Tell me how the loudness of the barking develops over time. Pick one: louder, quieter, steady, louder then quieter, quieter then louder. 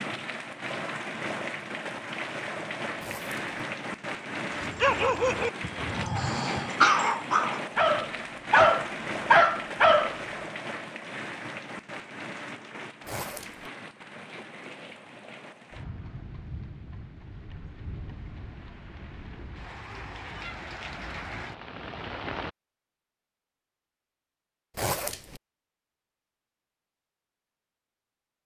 louder.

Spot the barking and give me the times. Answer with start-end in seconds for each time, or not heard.
4.6-10.2.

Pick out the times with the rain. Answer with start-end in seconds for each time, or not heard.
0.0-22.5.